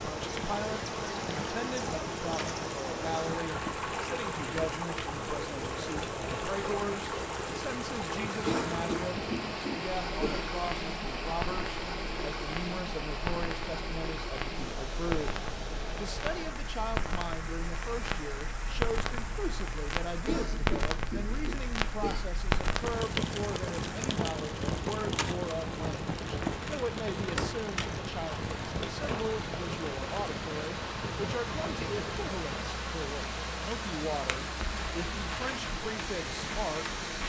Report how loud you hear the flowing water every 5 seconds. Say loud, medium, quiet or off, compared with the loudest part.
loud, loud, loud, medium, medium, medium, loud, loud.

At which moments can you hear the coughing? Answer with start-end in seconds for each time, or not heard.
8.4-10.4, 20.2-22.2.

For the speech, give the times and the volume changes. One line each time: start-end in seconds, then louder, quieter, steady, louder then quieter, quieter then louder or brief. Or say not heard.
0.0-37.0 steady.